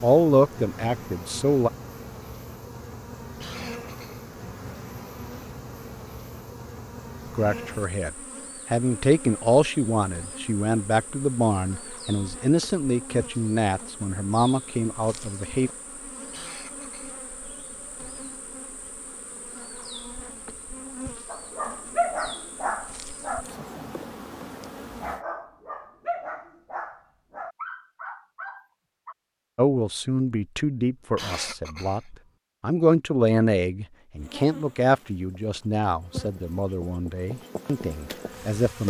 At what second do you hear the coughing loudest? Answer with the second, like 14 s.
31 s.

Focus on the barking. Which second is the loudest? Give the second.
22 s.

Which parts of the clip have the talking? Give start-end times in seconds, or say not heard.
0.0-1.7, 7.3-8.1, 8.7-15.7, 29.6-38.8.